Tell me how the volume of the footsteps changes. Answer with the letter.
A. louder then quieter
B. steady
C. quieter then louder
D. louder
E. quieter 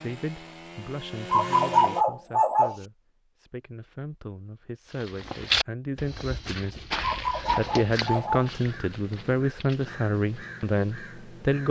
E.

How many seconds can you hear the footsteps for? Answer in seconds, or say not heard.
6 s.